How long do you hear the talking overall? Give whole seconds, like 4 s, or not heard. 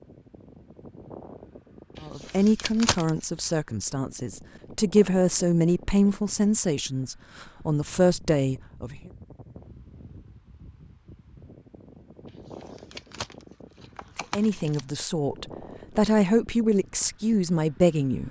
11 s.